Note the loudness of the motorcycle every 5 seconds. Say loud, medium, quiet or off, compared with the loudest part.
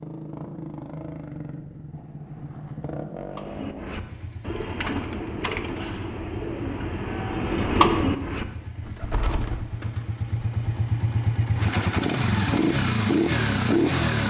quiet, quiet, loud.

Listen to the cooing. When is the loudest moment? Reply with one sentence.
The volume of the cooing peaks at 8 seconds.